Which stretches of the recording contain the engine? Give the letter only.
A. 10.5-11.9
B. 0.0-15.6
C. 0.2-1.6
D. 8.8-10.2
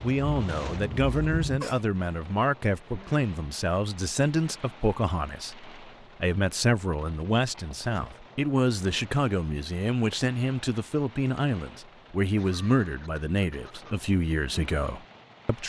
C.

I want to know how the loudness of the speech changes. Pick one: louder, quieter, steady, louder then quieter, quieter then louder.
steady.